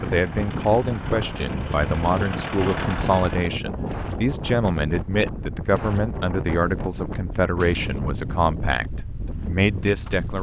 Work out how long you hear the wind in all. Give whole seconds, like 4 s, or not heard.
10 s.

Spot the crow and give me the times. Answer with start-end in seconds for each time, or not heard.
not heard.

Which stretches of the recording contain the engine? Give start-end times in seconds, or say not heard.
0.0-3.5.